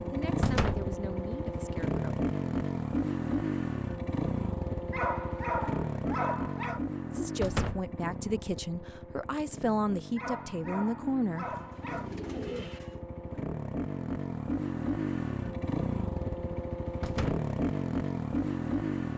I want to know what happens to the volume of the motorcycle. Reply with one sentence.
The volume of the motorcycle goes down, then up.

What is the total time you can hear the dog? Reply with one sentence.
You can hear the dog for 4 seconds altogether.